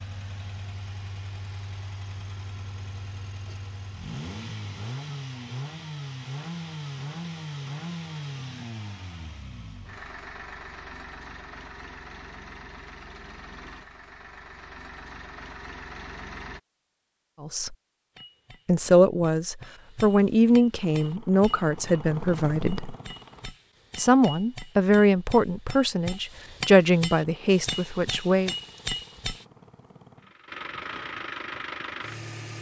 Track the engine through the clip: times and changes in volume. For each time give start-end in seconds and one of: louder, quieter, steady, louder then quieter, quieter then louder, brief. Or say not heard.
0.0-16.6 louder then quieter
20.8-23.5 brief
27.1-32.5 louder.